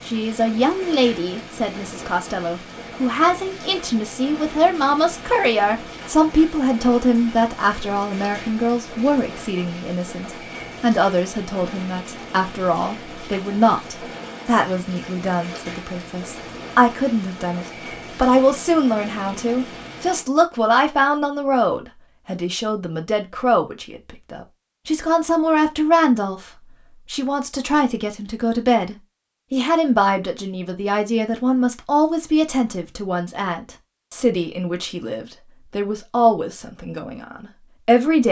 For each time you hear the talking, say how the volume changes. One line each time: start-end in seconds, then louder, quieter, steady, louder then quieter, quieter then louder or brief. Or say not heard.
0.1-38.2 steady.